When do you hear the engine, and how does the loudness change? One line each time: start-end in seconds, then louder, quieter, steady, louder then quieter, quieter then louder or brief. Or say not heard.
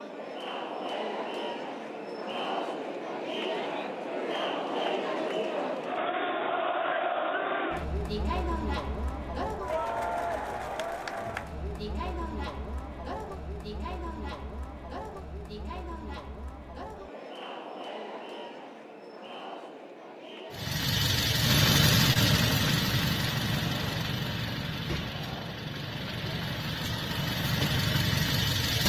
20.5-28.8 quieter then louder.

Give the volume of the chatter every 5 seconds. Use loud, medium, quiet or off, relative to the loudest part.
loud, loud, medium, medium, quiet, quiet.